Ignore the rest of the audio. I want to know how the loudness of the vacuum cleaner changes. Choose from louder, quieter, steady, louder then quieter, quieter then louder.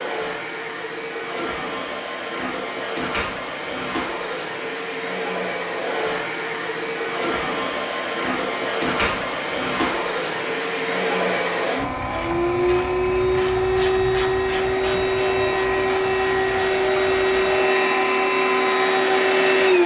louder.